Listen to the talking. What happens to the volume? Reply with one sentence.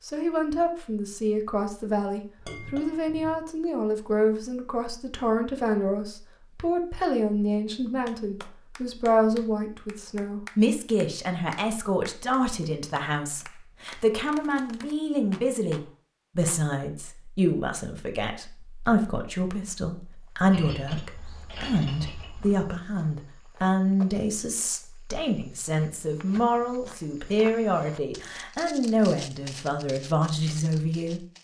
The loudness of the talking stays about the same.